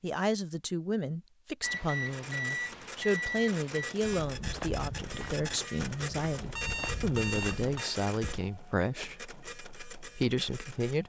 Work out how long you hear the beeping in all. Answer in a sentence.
The beeping can be heard for 4 seconds in total.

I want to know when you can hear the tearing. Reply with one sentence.
The tearing can't be heard in this clip.